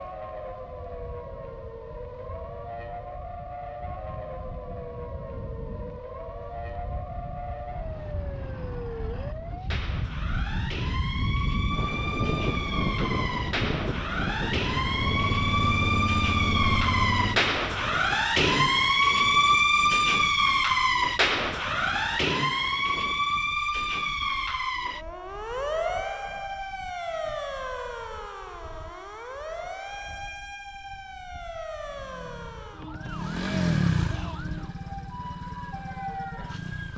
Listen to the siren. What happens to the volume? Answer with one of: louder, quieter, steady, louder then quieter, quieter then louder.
louder then quieter.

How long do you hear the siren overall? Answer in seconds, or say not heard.
37 s.